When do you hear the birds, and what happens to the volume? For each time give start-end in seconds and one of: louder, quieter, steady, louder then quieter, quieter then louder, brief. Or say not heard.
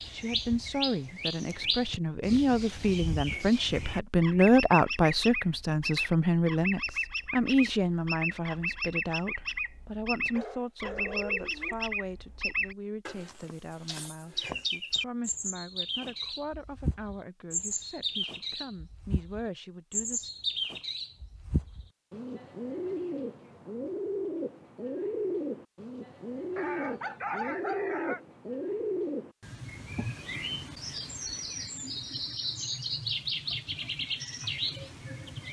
0.0-35.4 steady.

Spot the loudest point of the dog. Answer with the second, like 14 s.
27 s.